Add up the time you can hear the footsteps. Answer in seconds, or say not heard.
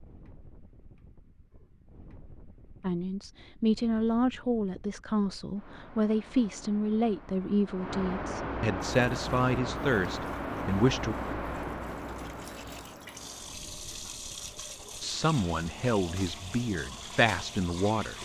not heard.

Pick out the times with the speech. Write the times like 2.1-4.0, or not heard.
2.8-11.2, 15.0-18.1.